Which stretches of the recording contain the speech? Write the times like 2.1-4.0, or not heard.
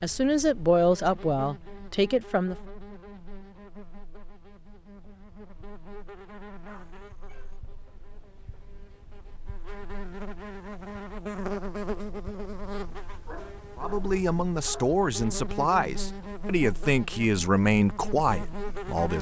0.0-2.5, 13.8-19.1.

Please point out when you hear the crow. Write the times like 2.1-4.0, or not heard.
not heard.